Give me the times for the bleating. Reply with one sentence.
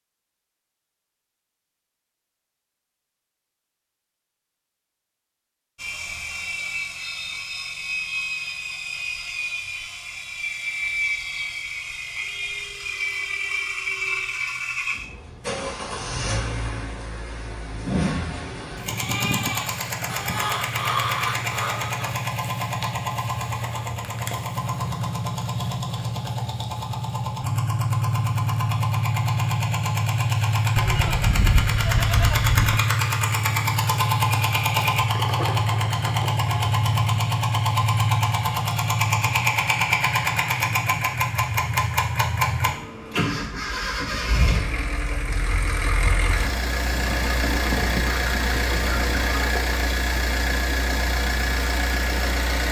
You can hear the bleating from 18.9 to 20.6 s and from 30.8 to 32.8 s.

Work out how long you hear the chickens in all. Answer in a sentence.
The chickens can be heard for 5 seconds in total.